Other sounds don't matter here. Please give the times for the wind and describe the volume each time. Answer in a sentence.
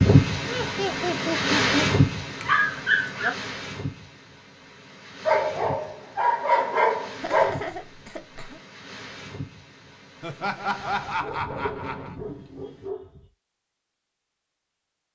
You can hear the wind from 0.0 to 12.9 s, getting quieter.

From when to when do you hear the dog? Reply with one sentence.
You can hear the dog from 2.4 to 3.3 s, from 5.2 to 7.7 s and from 11.0 to 13.3 s.